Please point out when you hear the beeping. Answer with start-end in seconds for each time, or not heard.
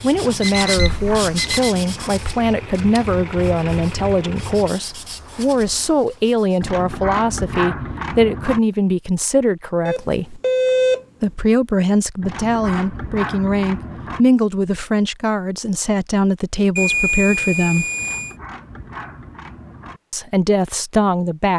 0.2-1.7, 9.8-11.1, 16.8-18.4.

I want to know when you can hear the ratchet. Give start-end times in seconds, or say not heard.
0.1-2.1, 6.6-8.6, 12.2-14.2, 17.9-20.0.